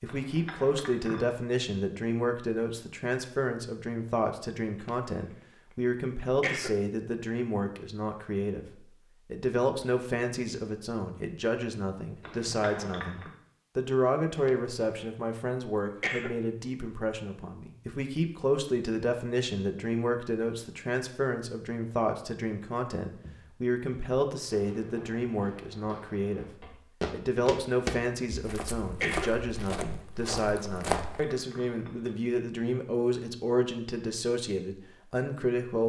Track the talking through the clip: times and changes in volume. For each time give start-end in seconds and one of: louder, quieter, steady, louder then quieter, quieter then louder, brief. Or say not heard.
0.0-35.8 steady.